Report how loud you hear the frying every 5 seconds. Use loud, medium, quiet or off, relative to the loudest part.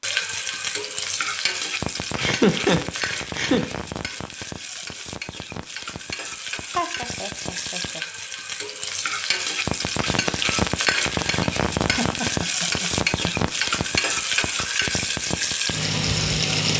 medium, medium, loud, loud.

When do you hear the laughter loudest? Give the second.
3 s.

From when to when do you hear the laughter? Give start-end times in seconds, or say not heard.
2.1-3.7, 6.8-8.0, 11.8-13.3.